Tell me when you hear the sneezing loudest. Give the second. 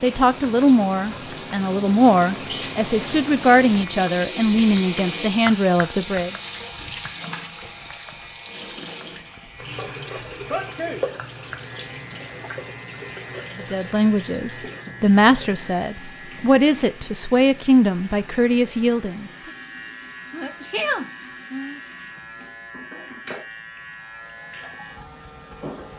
21 s.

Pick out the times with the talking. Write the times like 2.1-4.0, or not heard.
0.0-6.3, 13.6-19.2.